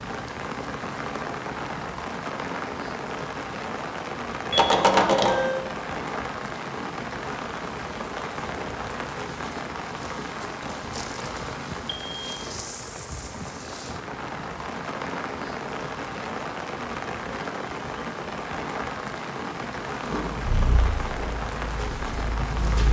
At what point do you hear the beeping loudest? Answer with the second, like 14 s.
5 s.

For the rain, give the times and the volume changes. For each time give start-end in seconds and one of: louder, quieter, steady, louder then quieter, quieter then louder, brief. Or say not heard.
0.0-22.8 steady.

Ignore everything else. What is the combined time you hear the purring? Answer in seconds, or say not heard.
3 s.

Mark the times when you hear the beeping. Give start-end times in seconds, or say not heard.
4.5-5.7, 11.8-12.3.